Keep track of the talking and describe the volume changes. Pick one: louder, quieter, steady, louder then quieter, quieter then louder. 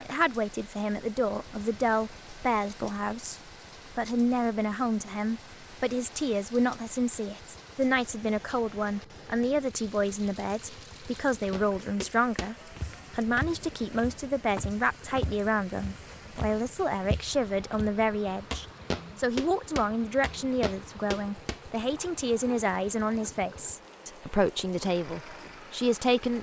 steady.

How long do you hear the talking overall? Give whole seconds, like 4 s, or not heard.
26 s.